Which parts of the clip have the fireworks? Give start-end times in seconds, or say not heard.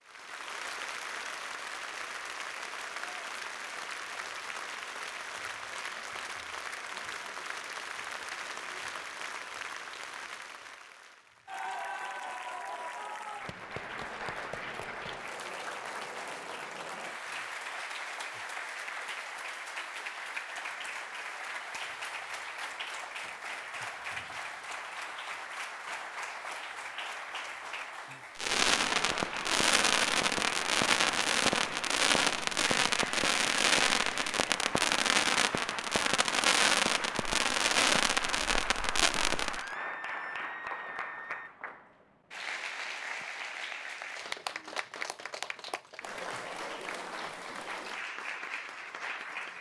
28.4-39.7.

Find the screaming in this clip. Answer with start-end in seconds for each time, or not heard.
39.5-41.5.